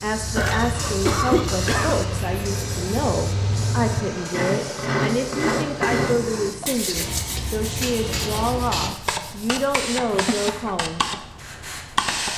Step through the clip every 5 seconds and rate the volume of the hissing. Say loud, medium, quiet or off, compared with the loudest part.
medium, loud, loud.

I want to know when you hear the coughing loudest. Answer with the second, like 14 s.
1 s.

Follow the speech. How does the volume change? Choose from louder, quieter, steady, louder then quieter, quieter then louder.
steady.